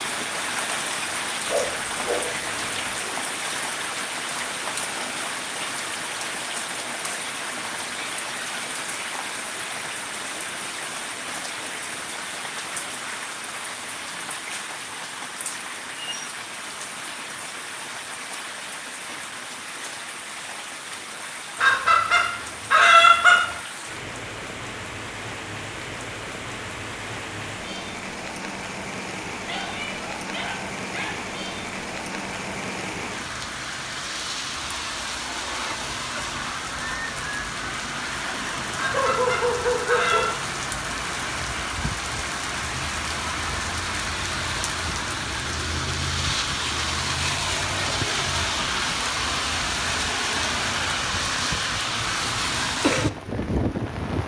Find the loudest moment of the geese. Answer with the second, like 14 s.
23 s.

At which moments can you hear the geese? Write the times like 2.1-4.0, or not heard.
21.6-23.6, 38.8-40.3.